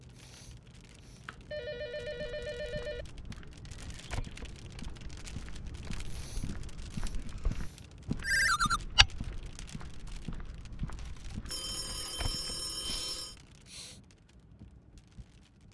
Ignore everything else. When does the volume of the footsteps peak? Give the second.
9 s.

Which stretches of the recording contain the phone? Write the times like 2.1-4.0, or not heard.
1.2-3.0, 8.2-8.8, 10.9-13.3.